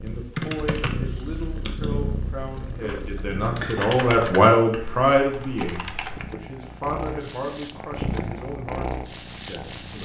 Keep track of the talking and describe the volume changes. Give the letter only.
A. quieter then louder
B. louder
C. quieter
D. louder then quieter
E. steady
D.